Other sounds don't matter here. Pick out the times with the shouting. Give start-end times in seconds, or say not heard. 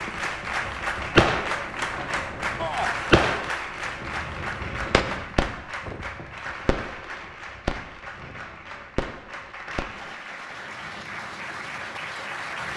2.5-3.0.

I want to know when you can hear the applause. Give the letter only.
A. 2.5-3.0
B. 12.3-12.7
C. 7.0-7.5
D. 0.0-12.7
D.